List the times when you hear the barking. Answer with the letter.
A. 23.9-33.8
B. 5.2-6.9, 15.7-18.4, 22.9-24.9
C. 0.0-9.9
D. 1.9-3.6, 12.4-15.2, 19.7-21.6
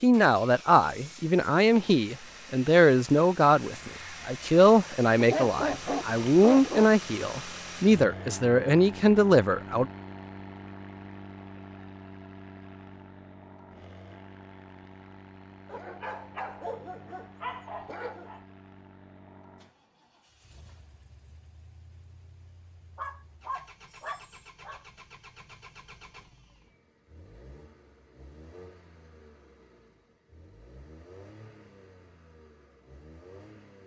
B.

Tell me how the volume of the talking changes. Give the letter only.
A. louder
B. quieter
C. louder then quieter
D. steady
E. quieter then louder
D.